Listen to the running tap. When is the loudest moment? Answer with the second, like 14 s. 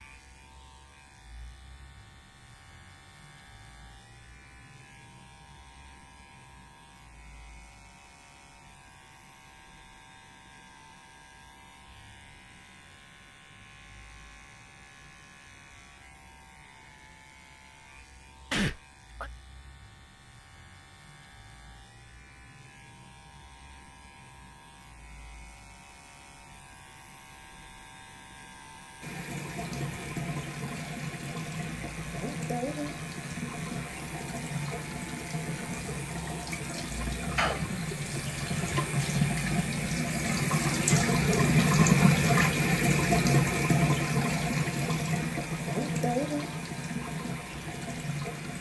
42 s.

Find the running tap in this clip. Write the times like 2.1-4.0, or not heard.
29.0-48.5.